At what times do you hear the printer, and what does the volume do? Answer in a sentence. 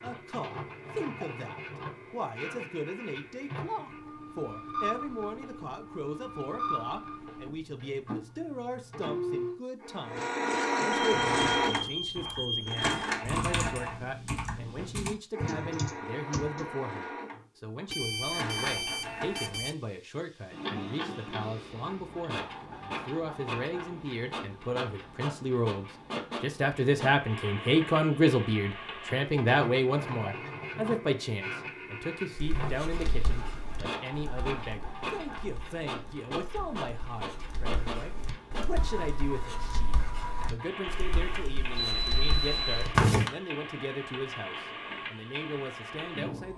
The printer can be heard from 0.0 to 46.5 s, getting louder then quieter.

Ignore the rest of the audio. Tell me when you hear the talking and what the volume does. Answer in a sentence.
The talking can be heard from 0.0 to 46.5 s, getting louder then quieter.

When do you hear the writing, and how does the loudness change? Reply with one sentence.
You can hear the writing from 32.4 to 43.3 s, getting quieter then louder.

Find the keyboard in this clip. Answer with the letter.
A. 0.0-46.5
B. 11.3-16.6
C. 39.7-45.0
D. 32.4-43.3
B.